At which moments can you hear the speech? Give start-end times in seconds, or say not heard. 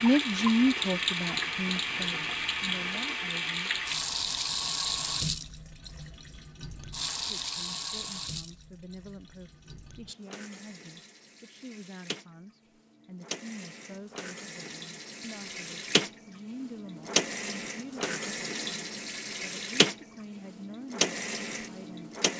0.0-3.7, 7.2-22.1.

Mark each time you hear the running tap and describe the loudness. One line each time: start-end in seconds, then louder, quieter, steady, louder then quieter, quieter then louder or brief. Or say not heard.
0.0-22.3 quieter then louder.